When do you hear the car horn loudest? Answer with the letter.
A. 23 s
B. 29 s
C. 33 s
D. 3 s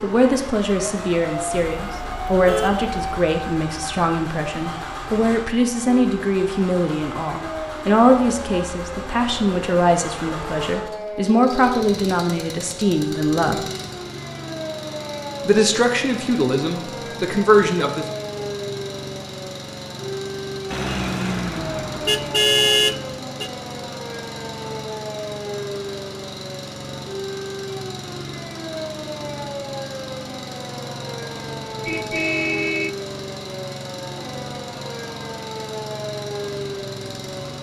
A.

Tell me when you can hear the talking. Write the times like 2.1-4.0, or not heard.
0.0-13.6, 15.4-18.1.